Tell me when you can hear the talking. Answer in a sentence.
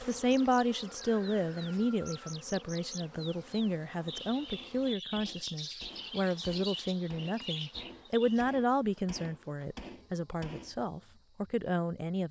The talking can be heard from 0.0 to 12.2 s.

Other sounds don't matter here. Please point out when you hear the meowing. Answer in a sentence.
You can't hear the meowing here.